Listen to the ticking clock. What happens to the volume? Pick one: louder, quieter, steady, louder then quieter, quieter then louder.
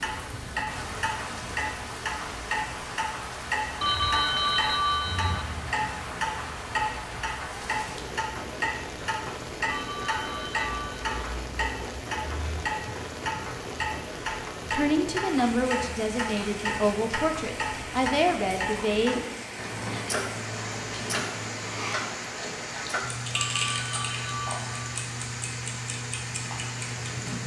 steady.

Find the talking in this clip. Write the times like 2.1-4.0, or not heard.
14.7-19.4.